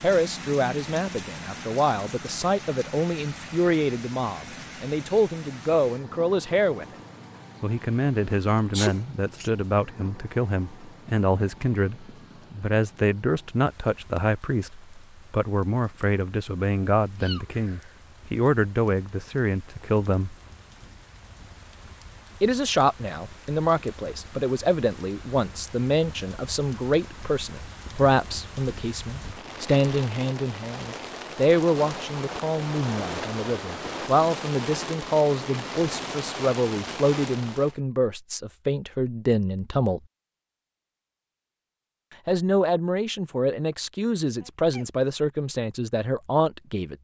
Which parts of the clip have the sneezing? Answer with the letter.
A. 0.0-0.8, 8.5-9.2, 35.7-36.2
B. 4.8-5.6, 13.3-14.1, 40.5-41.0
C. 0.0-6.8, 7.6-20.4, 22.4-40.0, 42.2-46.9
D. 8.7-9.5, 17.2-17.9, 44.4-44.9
D.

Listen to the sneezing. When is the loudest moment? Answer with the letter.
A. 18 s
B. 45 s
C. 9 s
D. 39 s
C.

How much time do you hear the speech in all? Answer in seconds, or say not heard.
42 s.